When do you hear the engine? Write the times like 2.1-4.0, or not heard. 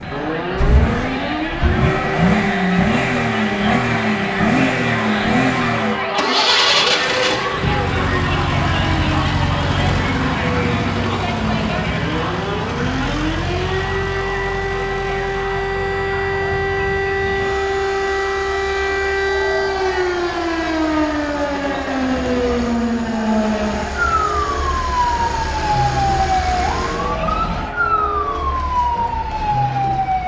0.0-27.1.